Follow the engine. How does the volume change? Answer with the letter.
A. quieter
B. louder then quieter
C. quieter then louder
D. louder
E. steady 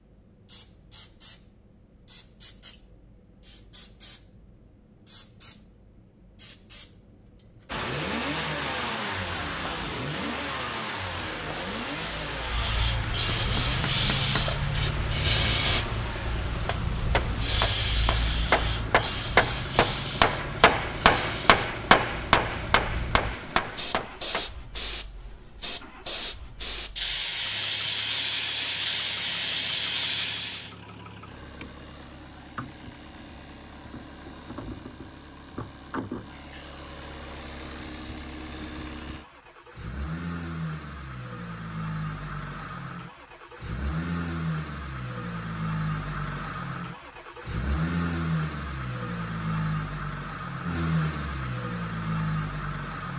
C.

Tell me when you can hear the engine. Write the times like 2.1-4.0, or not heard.
7.7-53.1.